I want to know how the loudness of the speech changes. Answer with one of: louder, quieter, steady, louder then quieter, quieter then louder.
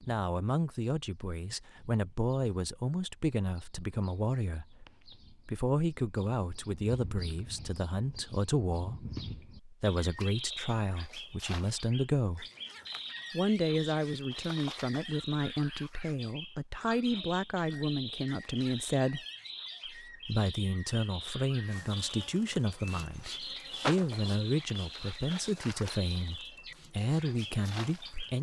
steady.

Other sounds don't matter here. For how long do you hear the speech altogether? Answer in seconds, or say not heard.
27 s.